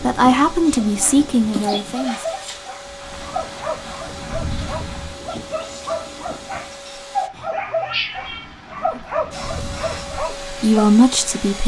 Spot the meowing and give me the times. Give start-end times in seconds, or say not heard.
1.5-2.1, 7.3-8.6.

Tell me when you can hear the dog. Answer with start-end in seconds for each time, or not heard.
0.8-10.8.